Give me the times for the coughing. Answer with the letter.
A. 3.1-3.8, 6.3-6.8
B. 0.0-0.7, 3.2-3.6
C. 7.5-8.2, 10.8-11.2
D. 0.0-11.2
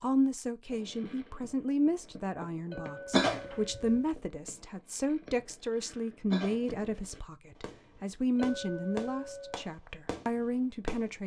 A.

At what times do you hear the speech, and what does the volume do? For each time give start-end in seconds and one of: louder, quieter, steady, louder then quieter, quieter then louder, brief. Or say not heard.
0.0-11.2 steady.